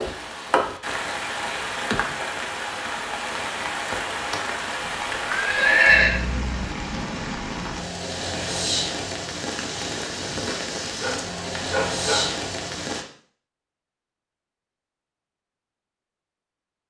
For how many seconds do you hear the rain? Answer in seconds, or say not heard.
13 s.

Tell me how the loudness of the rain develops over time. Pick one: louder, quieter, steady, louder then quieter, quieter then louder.
steady.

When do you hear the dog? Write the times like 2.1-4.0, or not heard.
11.0-12.4.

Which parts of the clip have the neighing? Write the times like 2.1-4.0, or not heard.
5.2-6.2.